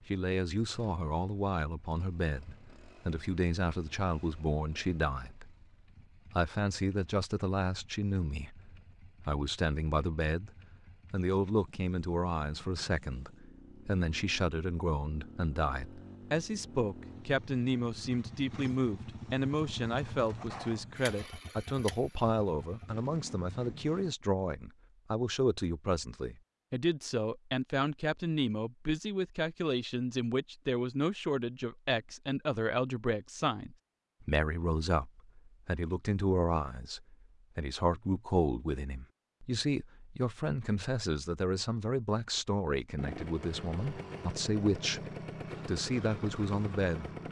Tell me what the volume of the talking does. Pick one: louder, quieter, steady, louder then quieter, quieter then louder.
steady.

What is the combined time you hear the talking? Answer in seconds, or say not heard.
46 s.